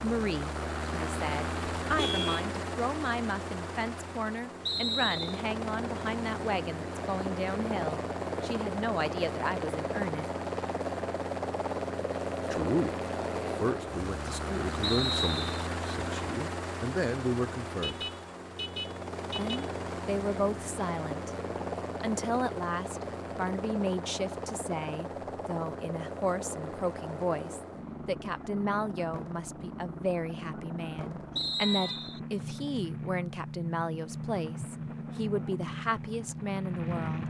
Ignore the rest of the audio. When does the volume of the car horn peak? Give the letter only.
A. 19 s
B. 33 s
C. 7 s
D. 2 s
D.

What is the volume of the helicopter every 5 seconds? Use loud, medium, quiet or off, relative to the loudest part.
loud, loud, loud, loud, loud, medium, medium, loud.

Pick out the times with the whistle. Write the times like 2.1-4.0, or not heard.
4.7-5.4, 14.8-15.7, 31.4-32.2.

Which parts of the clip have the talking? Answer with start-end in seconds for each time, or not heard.
0.0-10.2, 12.5-18.1, 19.4-21.3, 22.0-37.2.